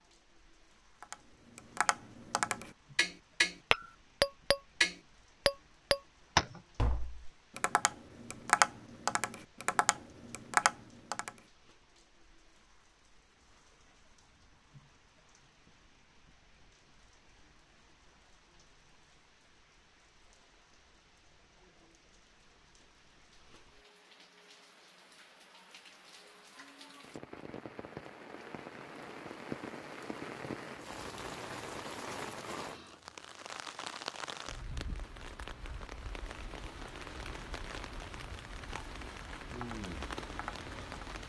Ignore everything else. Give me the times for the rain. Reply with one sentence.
The rain can be heard from 0.0 to 41.2 s.